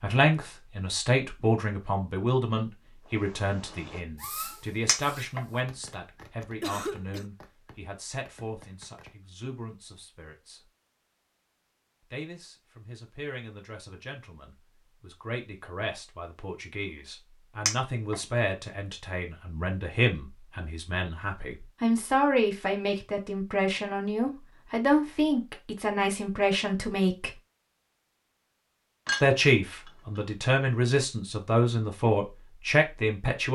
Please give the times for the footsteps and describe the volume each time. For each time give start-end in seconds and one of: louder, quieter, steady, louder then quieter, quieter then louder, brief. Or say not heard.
not heard.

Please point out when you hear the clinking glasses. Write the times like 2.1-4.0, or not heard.
4.8-5.4, 17.6-18.1, 29.1-30.2.